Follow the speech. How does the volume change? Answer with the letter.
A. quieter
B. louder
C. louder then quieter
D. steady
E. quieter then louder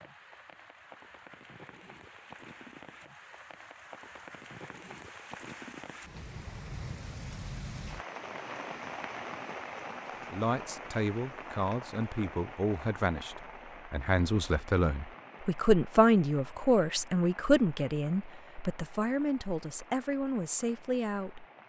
C.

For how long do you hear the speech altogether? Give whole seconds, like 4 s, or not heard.
11 s.